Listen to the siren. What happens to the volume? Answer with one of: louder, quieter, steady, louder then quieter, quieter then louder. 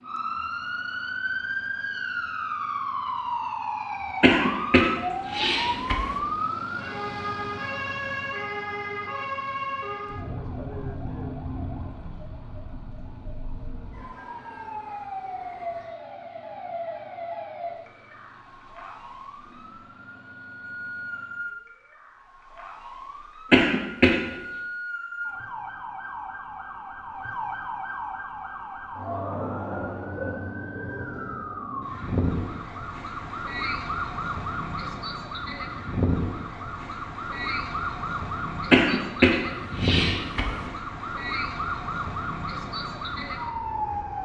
quieter then louder.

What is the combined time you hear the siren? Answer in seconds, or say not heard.
44 s.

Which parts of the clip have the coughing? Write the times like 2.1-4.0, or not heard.
4.2-6.2, 23.5-24.2, 38.7-40.7.